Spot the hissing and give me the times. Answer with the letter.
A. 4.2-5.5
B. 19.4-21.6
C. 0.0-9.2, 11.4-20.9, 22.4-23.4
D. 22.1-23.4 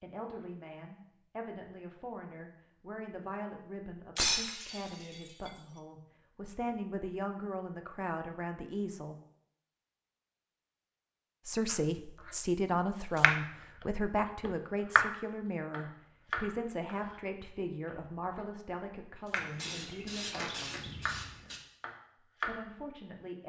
B.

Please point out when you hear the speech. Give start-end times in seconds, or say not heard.
0.0-9.2, 11.4-20.9, 22.4-23.4.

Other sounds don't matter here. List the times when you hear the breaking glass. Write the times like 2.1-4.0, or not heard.
4.2-5.5.